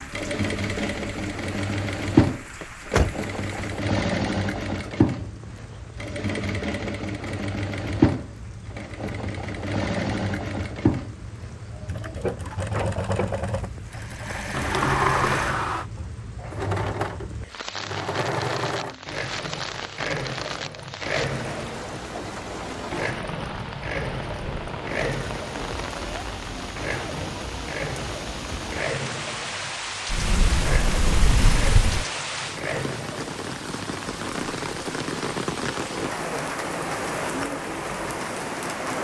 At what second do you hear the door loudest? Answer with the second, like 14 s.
15 s.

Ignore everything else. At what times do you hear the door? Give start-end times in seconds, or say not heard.
2.6-3.6, 14.5-15.8, 30.1-32.0.